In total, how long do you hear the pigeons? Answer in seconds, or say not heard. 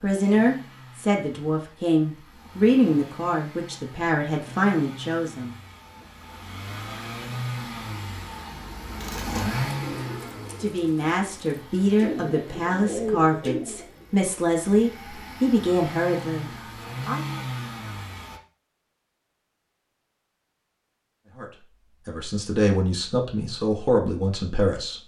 5 s.